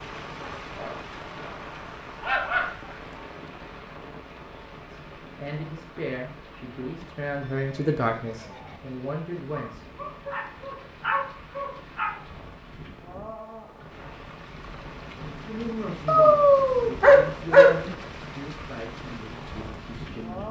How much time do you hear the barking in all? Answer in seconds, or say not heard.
7 s.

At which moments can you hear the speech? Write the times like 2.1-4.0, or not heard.
4.9-9.8, 15.4-20.4.